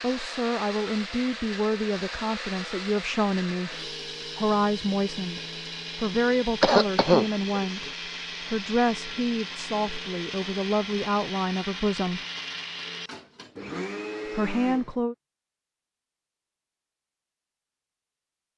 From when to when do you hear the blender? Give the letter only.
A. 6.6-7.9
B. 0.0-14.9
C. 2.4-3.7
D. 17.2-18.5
B.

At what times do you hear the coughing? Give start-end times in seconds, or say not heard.
6.6-7.9.